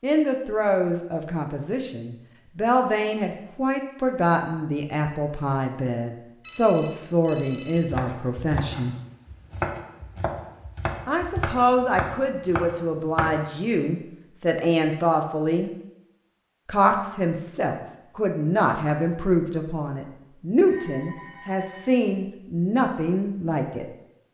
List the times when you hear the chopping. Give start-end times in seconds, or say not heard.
7.8-13.4.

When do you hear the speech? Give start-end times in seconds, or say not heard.
0.0-8.9, 11.1-15.7, 16.6-23.9.